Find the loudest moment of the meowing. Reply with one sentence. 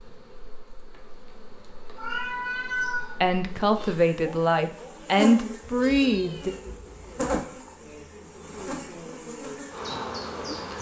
The volume of the meowing peaks at 3 seconds.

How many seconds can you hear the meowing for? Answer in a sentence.
You can hear the meowing for 3 seconds altogether.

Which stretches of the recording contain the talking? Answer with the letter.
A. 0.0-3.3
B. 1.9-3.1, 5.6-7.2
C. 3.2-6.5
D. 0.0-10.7
C.